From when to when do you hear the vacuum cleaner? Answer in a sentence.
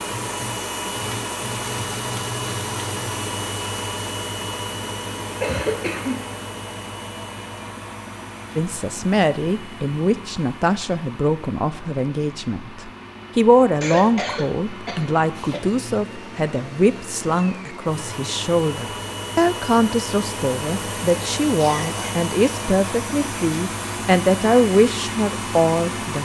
The vacuum cleaner can be heard from 0.0 to 26.1 s.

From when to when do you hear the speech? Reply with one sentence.
The speech can be heard from 8.6 to 26.1 s.